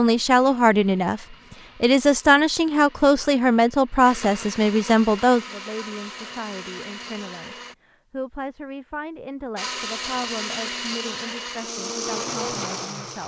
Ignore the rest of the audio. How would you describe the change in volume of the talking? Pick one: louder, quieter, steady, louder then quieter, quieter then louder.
quieter.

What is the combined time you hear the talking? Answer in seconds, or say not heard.
13 s.